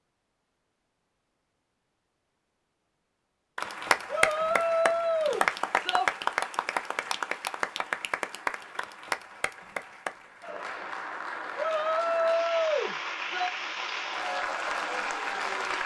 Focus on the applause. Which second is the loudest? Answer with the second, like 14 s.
6 s.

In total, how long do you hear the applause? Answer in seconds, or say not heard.
12 s.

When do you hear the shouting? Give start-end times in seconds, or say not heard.
4.0-6.0, 11.6-13.5.